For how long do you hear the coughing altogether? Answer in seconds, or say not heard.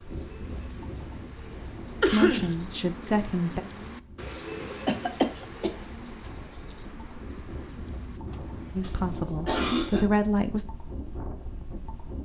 3 s.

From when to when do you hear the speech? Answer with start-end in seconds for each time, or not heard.
2.0-3.6, 8.8-10.7.